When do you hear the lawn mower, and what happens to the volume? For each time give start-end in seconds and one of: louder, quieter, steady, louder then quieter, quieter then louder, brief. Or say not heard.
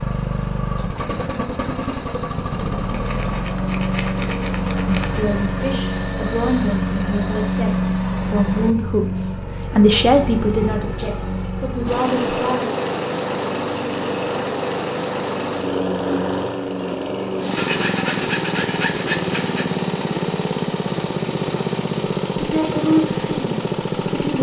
0.0-24.3 steady.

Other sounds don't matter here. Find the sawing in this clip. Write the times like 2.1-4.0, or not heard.
2.9-5.2, 17.6-19.7.